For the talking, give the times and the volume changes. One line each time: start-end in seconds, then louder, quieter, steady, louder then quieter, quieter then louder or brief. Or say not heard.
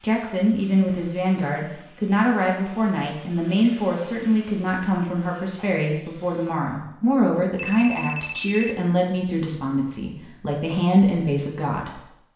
0.0-12.1 steady.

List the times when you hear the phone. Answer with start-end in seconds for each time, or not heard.
7.5-8.8.